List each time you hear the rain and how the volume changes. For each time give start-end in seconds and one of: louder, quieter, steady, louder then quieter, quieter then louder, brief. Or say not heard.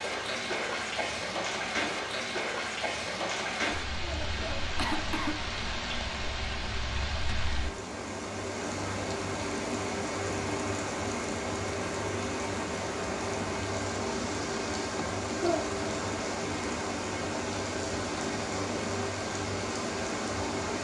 0.0-20.8 steady.